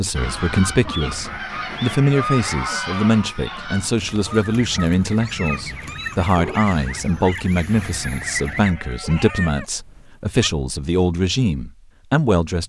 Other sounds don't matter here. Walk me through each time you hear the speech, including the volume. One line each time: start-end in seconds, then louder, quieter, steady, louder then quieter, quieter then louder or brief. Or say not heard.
0.0-12.6 steady.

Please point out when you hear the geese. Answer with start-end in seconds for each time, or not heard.
0.1-8.8.